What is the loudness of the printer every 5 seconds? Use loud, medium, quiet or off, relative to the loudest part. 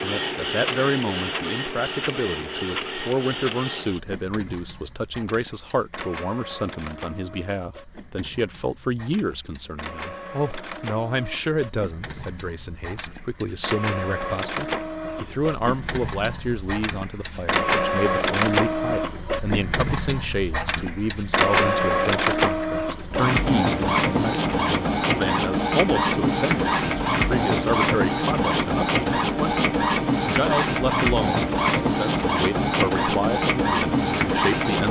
medium, quiet, medium, loud, loud, loud, loud.